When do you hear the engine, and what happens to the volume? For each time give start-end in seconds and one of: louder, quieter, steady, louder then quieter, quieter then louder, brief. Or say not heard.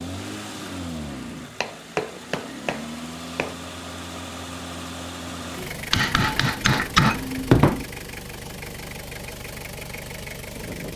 0.0-10.9 steady.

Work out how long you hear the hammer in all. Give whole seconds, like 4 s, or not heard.
4 s.